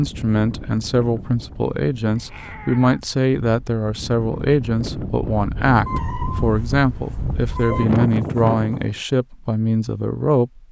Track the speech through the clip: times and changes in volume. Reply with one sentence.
The speech can be heard from 0.0 to 10.6 s, at a steady volume.